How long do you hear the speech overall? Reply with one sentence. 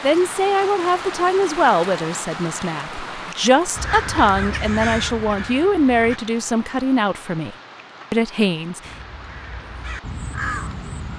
The speech can be heard for 9 seconds in total.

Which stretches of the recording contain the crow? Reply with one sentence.
You can hear the crow from 3.8 to 6.2 s and from 8.8 to 11.1 s.